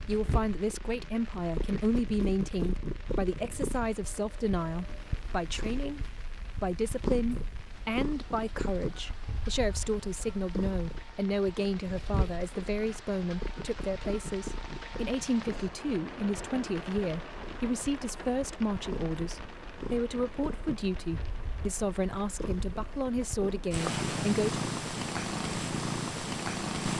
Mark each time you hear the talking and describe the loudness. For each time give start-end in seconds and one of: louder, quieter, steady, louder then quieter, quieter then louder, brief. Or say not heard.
0.0-24.6 steady.